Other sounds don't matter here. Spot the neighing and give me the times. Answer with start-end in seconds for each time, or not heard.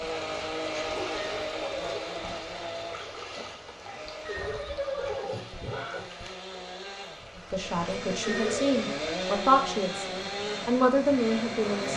1.1-2.1, 4.2-6.2, 8.2-8.8.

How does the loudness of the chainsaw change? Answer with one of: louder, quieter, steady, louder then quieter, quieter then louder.
quieter then louder.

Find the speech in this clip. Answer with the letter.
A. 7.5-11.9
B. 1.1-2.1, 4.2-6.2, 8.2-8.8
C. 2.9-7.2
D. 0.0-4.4
A.